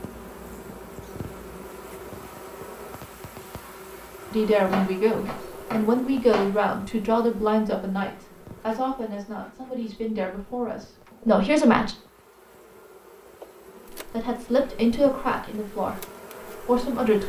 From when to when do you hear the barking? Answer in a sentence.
The barking can't be heard in this clip.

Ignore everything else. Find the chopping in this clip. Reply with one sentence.
You can hear the chopping from 4.7 to 6.5 s.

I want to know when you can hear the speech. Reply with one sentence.
The speech can be heard from 4.3 to 11.9 s, from 13.9 to 16.0 s and from 16.6 to 17.2 s.